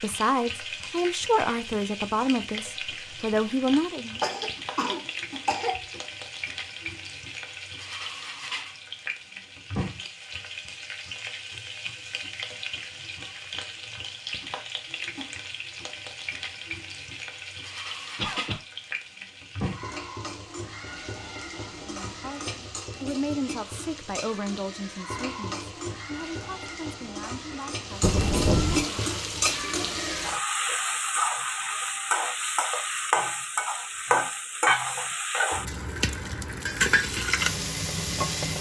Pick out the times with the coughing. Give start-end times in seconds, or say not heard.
4.2-6.0, 18.1-18.6, 28.0-28.9.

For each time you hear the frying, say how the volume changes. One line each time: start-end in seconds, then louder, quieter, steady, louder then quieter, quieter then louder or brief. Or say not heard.
0.0-38.5 louder.